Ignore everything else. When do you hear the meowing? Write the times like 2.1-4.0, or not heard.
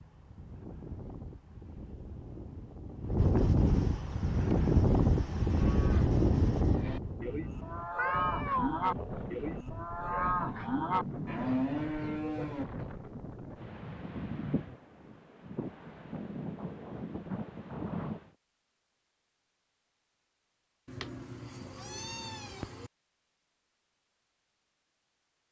8.0-8.8, 20.9-22.9.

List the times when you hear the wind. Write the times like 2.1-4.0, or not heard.
0.0-18.4.